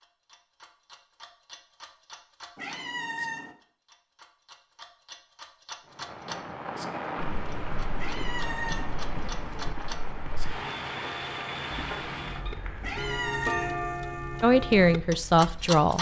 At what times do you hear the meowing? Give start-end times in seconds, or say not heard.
2.5-3.5, 8.0-8.9, 12.8-13.8.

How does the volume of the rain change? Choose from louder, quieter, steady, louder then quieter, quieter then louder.
quieter.